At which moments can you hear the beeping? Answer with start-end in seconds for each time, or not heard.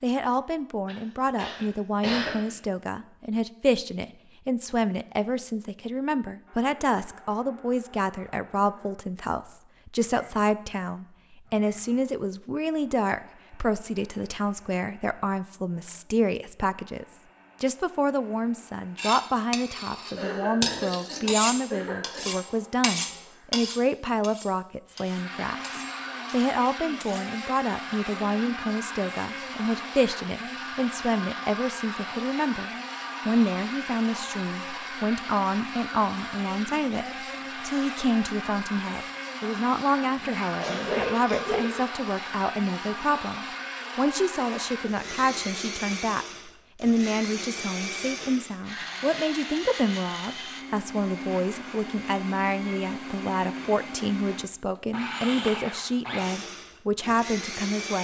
not heard.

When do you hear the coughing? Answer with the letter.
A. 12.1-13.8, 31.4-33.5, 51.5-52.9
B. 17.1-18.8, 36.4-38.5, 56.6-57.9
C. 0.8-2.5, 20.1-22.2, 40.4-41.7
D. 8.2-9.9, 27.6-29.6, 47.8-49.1
C.